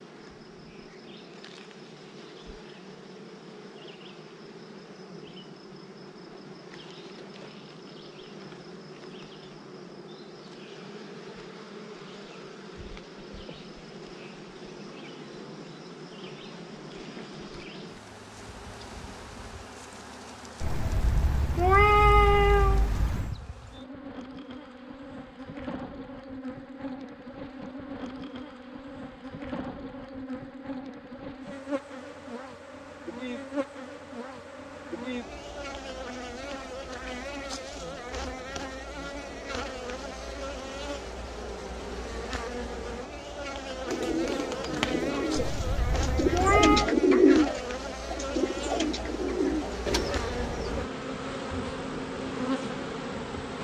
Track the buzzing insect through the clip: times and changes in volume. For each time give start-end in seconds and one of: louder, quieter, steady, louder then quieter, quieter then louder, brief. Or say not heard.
0.0-53.5 louder.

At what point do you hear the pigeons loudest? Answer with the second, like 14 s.
47 s.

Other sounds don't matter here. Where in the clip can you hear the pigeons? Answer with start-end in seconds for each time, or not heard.
43.9-50.9.